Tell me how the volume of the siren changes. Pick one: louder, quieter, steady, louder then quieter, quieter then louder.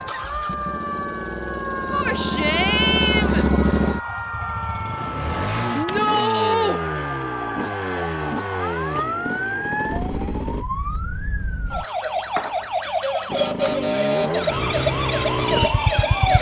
louder.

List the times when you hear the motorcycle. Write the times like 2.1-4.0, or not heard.
0.0-10.7, 13.2-16.3.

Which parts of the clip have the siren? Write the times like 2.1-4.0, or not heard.
0.0-16.3.